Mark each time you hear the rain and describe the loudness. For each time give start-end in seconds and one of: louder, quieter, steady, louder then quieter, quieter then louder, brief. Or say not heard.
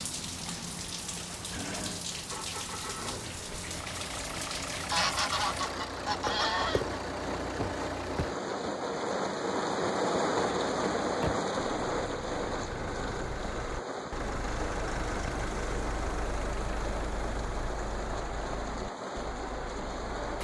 0.0-20.4 louder then quieter.